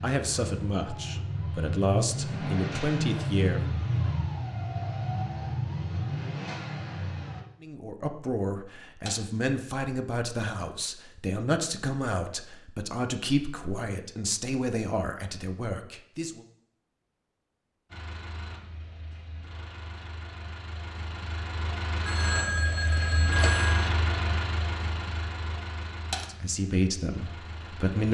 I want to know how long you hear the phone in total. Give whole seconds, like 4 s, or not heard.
2 s.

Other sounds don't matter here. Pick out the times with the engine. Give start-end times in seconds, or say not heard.
0.0-7.5, 17.9-28.0.